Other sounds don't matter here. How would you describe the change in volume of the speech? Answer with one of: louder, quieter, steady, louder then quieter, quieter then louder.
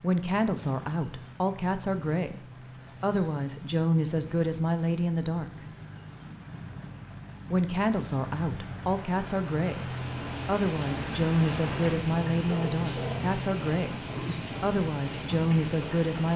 steady.